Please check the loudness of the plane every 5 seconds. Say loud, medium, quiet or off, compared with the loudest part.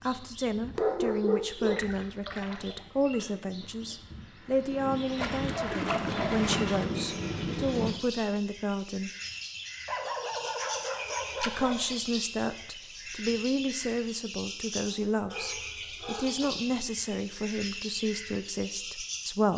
quiet, loud, off, off.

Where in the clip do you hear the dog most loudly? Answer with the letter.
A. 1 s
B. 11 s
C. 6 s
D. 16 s
A.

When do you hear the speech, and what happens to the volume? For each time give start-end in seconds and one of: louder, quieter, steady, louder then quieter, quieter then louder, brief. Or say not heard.
0.0-9.1 steady
11.4-19.5 steady.